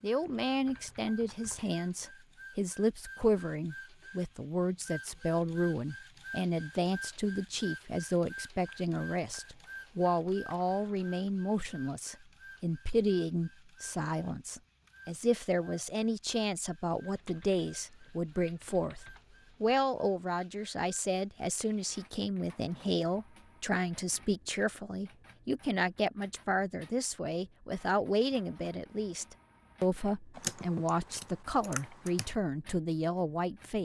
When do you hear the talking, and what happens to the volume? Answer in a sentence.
The talking can be heard from 0.0 to 33.8 s, at a steady volume.